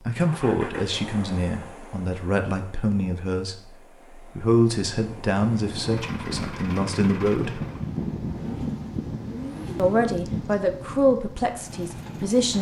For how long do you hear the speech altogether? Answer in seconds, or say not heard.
10 s.